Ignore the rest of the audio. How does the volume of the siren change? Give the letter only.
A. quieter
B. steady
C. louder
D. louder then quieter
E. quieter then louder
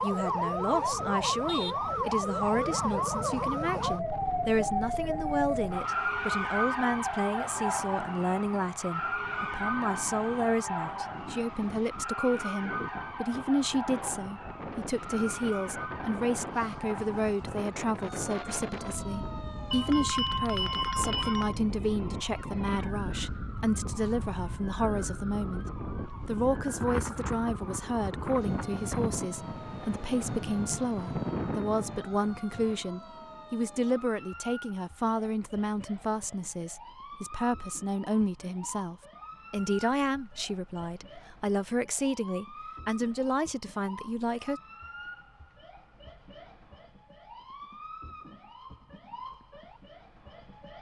A.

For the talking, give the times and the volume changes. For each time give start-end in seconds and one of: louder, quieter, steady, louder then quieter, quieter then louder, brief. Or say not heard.
0.0-44.6 steady.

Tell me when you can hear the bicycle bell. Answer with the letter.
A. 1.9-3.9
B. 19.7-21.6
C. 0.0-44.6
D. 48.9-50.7
B.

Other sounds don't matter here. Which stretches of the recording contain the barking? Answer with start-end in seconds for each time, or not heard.
not heard.